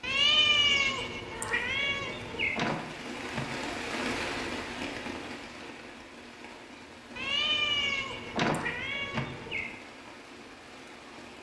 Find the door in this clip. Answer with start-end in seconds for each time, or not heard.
2.5-3.5, 8.3-9.6.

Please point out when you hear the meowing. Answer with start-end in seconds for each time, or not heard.
0.0-2.6, 7.2-9.8.